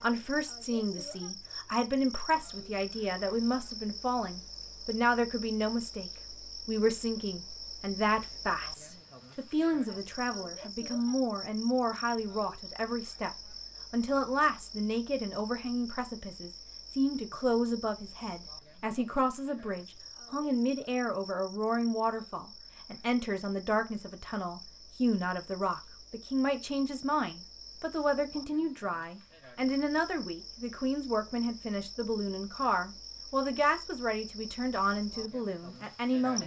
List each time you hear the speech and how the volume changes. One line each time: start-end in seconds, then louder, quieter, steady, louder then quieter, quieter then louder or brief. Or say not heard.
0.0-36.4 steady.